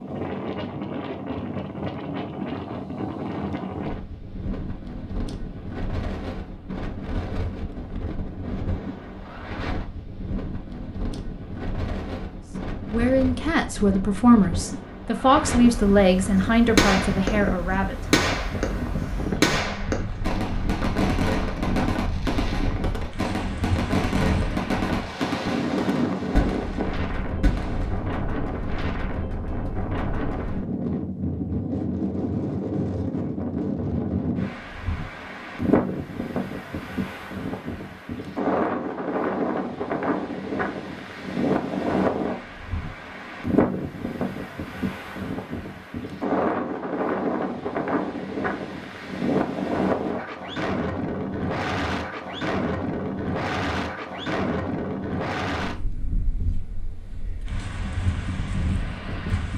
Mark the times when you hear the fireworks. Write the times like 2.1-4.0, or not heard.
16.4-17.4, 18.1-18.8, 19.4-28.2.